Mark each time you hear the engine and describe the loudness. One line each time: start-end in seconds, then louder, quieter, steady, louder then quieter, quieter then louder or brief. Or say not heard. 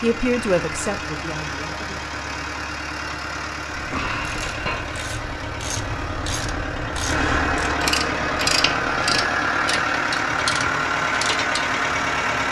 0.0-12.4 louder.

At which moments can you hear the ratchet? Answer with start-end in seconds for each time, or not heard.
3.7-11.7.